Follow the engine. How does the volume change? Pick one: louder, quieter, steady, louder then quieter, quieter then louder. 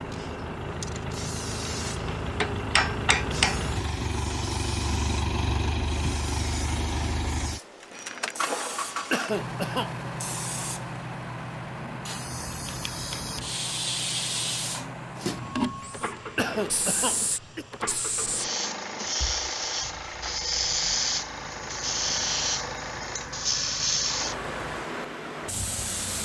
quieter.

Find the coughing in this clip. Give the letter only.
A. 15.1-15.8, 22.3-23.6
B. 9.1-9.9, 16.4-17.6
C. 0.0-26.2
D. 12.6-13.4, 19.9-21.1
B.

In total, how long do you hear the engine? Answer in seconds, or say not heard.
26 s.